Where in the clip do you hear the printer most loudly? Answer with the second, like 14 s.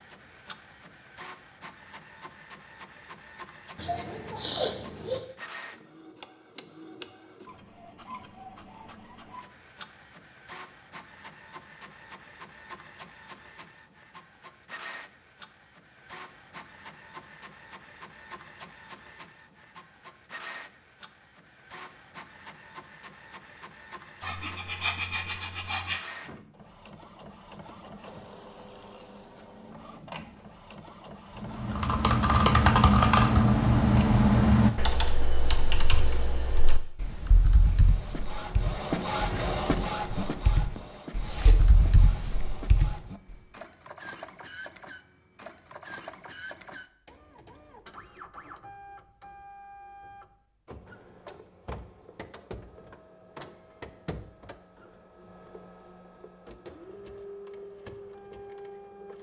39 s.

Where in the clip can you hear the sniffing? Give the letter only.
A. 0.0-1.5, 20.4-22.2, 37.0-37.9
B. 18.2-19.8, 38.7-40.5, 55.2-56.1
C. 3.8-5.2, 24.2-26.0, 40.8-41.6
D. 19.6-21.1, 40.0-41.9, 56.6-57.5
C.